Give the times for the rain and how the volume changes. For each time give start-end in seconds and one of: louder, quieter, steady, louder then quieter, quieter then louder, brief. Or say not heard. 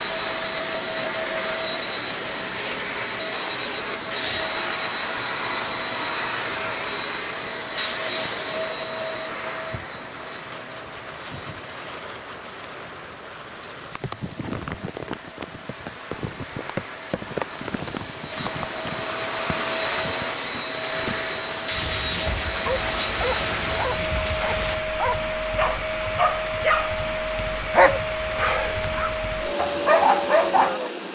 0.0-24.8 louder.